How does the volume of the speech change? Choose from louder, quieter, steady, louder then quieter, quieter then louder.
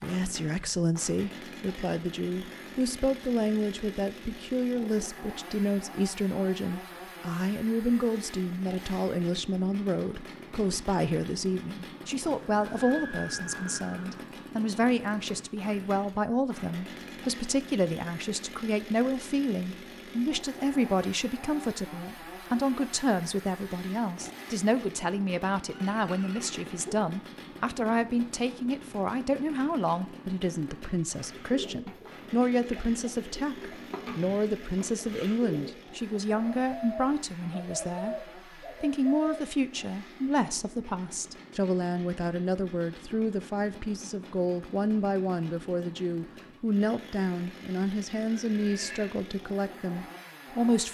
steady.